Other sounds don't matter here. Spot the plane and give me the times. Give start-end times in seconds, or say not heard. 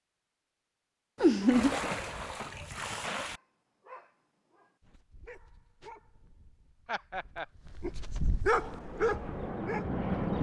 8.4-10.3.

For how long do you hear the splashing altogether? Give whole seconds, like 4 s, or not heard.
2 s.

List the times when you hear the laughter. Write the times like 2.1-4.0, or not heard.
1.2-1.8, 6.8-7.5.